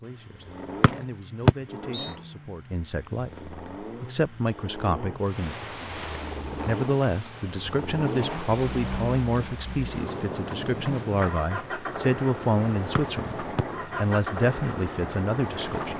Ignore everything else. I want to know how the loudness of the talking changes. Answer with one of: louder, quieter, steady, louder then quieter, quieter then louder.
louder.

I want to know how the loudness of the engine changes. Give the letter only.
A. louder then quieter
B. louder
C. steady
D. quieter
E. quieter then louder
B.